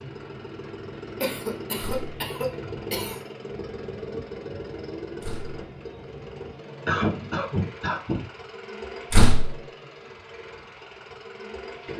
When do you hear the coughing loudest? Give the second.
7 s.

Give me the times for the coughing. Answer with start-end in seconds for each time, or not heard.
1.2-3.2, 6.8-8.3.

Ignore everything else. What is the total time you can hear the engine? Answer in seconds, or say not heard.
12 s.